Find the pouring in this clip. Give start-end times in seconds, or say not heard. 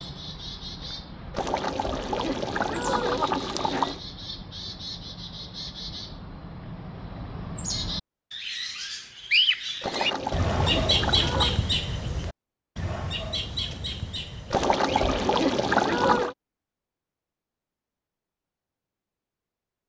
1.3-4.0, 9.8-11.6, 14.5-16.4.